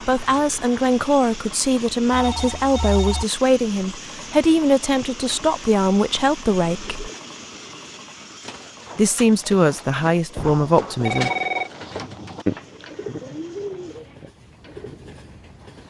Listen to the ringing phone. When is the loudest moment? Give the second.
11 s.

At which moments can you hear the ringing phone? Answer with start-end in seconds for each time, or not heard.
2.1-3.2, 10.3-11.7.